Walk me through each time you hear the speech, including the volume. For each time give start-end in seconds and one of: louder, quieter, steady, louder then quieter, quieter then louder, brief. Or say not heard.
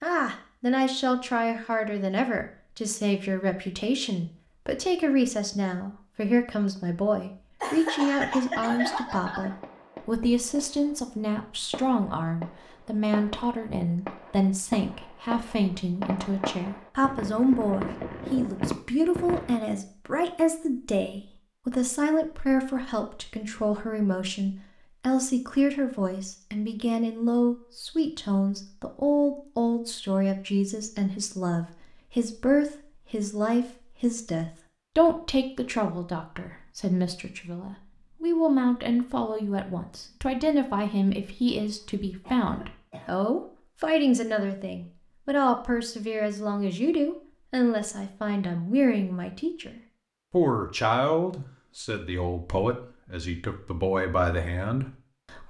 0.0-55.4 steady.